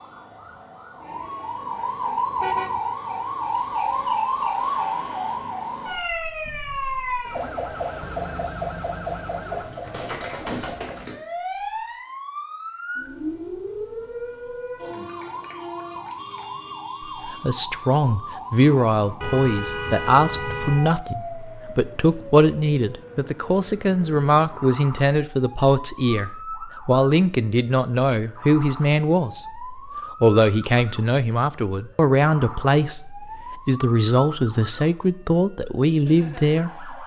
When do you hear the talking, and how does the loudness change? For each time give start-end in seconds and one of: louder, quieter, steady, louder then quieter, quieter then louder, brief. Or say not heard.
17.2-37.0 steady.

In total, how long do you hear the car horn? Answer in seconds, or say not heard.
2 s.